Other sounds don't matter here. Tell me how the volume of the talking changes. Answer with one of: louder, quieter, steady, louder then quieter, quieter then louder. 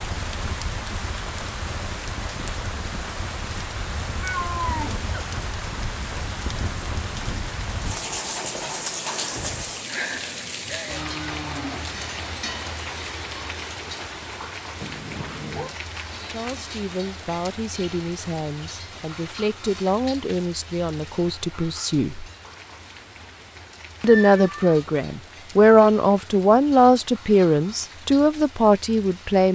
louder.